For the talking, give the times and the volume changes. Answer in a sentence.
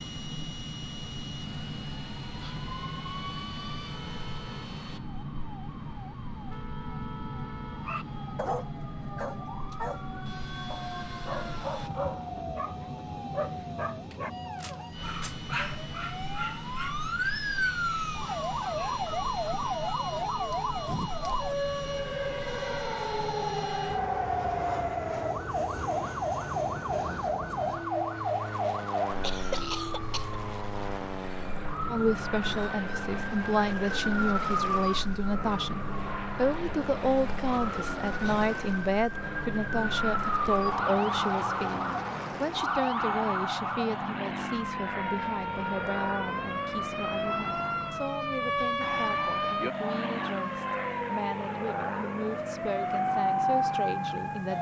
The talking can be heard from 31.9 to 54.5 s, getting quieter.